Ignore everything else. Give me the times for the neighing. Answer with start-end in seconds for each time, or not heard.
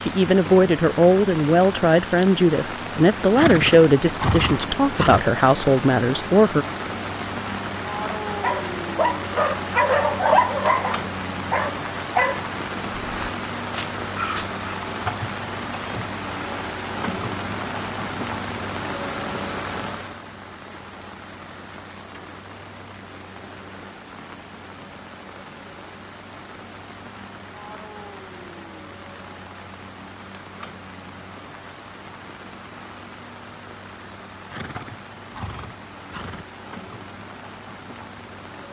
3.4-5.2, 34.5-36.5.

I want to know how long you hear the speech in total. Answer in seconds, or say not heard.
7 s.